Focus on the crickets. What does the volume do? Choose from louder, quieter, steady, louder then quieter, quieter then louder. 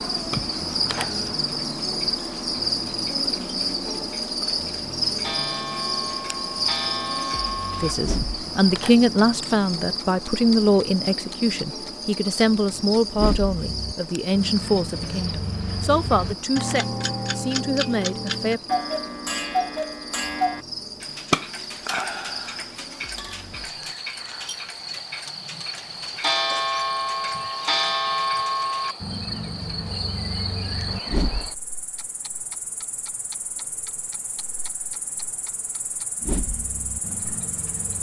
quieter.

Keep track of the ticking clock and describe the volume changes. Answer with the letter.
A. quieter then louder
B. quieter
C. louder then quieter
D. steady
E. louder
C.